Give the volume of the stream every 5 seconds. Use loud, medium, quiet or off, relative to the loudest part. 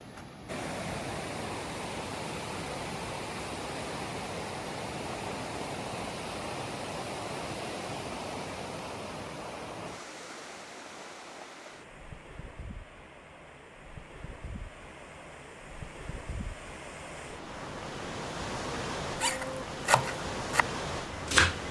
loud, loud, medium, loud, loud.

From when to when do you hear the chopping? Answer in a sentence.
The chopping can be heard from 19.2 to 21.6 s.